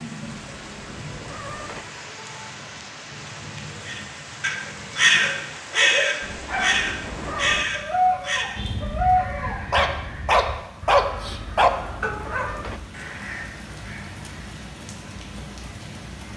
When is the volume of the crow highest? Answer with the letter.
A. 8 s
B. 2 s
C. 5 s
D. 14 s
C.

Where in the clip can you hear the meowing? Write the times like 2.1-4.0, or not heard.
0.3-1.9, 6.2-7.7, 11.2-12.8.